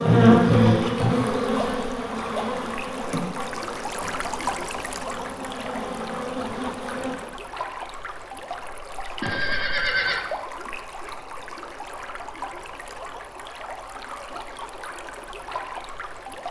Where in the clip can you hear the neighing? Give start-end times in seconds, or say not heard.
9.2-10.2.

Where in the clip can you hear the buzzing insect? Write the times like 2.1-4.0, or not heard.
0.0-7.2.